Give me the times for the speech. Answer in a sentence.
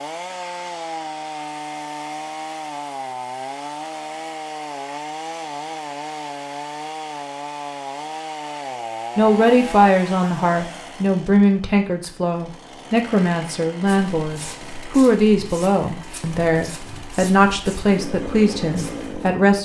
You can hear the speech from 9.2 to 19.5 s.